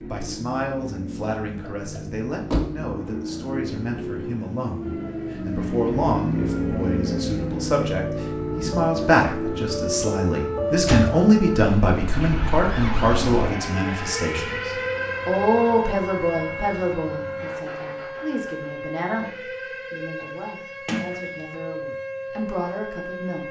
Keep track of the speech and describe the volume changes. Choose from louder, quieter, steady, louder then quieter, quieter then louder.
louder then quieter.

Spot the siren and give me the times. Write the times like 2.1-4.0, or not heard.
4.8-23.4.